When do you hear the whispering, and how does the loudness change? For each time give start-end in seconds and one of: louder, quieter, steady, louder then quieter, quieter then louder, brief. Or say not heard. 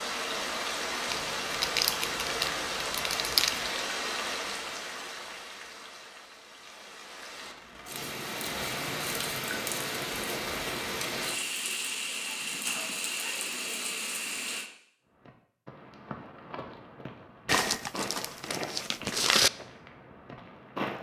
not heard.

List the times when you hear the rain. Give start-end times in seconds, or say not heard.
0.0-14.7.